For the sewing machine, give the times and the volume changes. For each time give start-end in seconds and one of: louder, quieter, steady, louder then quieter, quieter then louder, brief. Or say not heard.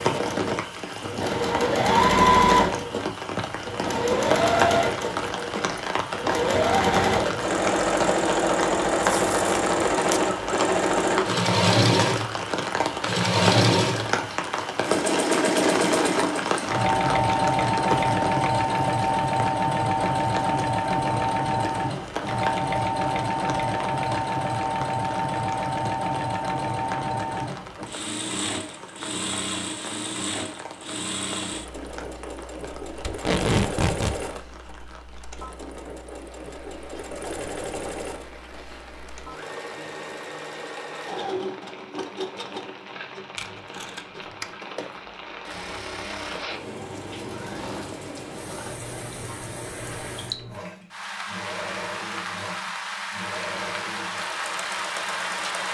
0.0-55.6 quieter.